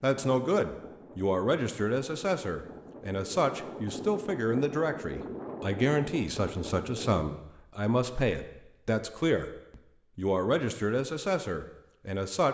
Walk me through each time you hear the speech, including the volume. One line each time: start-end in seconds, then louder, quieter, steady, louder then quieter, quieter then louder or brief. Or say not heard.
0.0-12.4 steady.